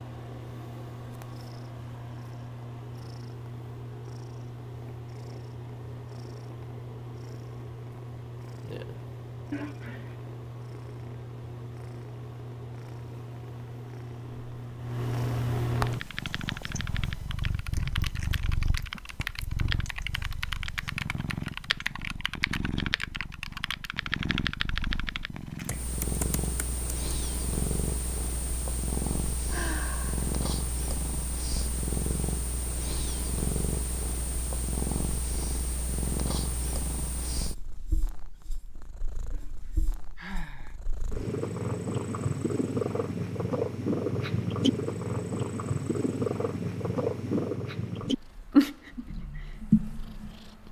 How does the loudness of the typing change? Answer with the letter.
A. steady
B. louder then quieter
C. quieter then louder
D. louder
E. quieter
D.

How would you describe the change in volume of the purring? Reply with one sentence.
The volume of the purring goes up.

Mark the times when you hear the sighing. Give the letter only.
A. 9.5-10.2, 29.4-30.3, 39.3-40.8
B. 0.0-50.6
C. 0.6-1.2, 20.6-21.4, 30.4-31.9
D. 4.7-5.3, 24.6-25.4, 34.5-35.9
A.